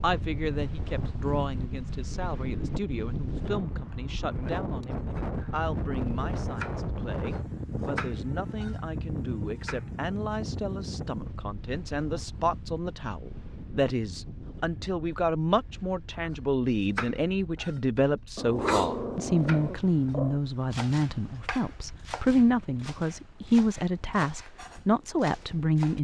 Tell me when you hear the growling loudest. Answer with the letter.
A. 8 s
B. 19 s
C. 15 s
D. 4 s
B.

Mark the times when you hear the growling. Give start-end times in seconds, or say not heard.
18.4-20.4.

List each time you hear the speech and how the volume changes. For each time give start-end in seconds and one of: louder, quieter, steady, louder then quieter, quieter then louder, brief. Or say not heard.
0.0-25.9 louder.